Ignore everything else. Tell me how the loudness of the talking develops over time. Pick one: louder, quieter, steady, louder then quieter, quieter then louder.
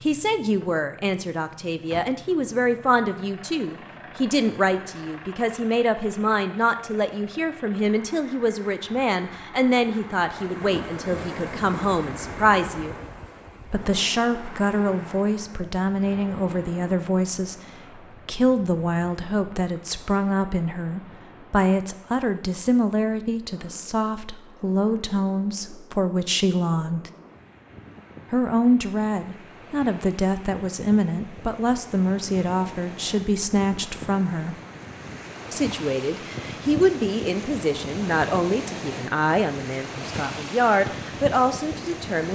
steady.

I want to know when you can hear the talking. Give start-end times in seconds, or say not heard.
0.0-12.9, 13.7-17.6, 18.2-27.1, 28.3-34.5, 35.5-42.2.